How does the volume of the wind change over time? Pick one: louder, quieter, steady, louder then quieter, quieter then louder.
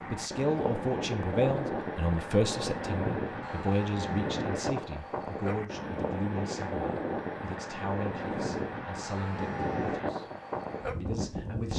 steady.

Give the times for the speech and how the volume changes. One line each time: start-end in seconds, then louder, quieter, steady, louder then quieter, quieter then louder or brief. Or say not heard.
0.1-10.2 quieter
11.0-11.7 brief.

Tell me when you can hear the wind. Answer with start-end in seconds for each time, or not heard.
0.0-11.7.